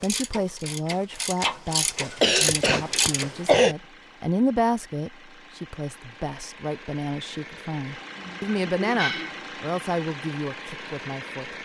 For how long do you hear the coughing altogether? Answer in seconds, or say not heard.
3 s.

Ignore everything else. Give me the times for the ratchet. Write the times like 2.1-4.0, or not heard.
0.0-3.6.